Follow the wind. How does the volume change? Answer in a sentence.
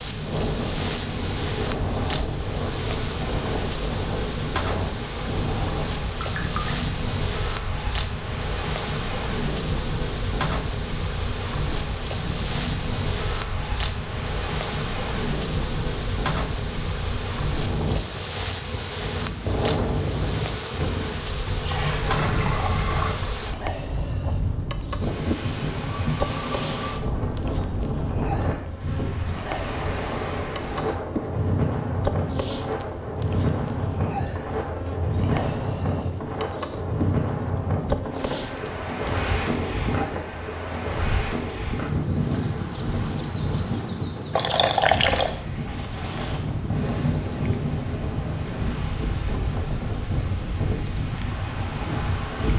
The volume of the wind stays about the same.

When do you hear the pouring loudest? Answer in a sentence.
The loudest moment of the pouring is at 45 seconds.